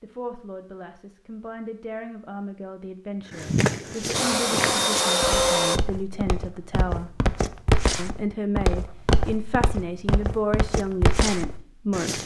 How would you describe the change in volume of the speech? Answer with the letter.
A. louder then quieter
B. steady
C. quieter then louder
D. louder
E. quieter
D.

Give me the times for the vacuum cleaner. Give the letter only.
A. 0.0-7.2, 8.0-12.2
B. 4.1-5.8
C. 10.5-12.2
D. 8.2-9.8
B.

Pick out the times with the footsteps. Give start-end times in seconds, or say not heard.
3.3-12.2.